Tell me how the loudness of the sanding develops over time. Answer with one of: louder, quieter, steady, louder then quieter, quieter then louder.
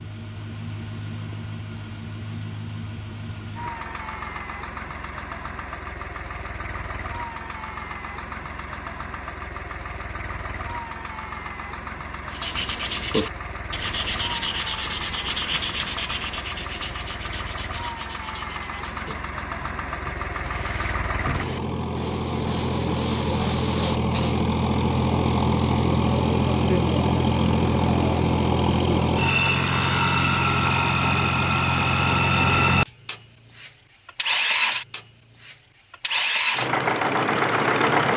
quieter then louder.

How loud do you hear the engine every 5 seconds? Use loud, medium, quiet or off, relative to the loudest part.
quiet, quiet, quiet, quiet, medium, loud, loud, loud.